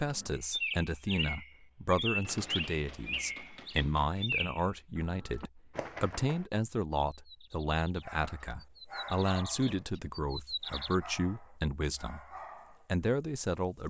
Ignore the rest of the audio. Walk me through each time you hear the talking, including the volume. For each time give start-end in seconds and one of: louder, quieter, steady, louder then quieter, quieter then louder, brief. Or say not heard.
0.0-13.8 steady.